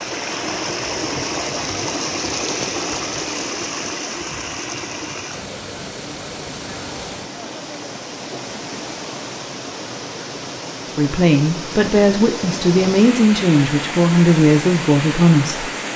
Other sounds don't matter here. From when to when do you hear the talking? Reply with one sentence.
You can hear the talking from 10.9 to 15.7 s.